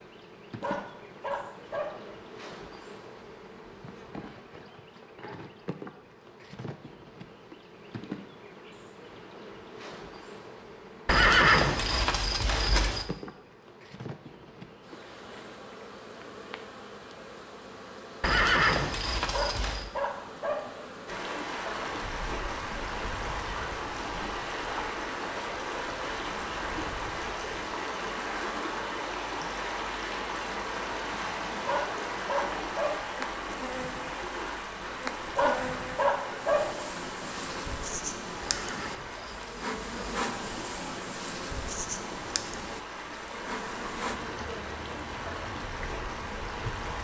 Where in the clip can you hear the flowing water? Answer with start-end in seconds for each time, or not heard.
21.1-46.9.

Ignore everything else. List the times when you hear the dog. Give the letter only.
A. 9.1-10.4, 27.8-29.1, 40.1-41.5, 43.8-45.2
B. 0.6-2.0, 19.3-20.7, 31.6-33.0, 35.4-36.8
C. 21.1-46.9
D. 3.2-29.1
B.